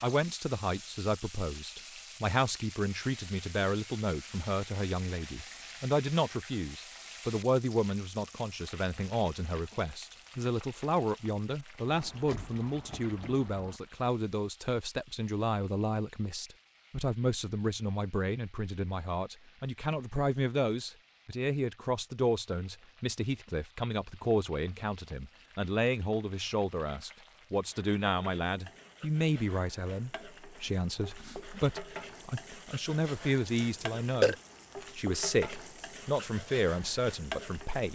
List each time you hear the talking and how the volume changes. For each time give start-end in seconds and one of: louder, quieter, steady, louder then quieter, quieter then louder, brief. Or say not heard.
0.0-34.4 steady
35.0-37.9 brief.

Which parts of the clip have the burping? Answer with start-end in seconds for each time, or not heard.
33.5-34.4.